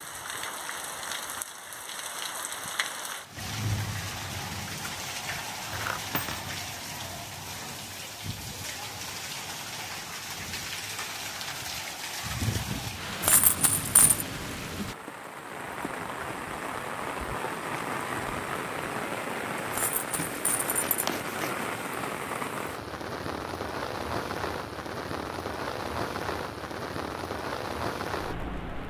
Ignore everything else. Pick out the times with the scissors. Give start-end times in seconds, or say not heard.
20.1-21.6.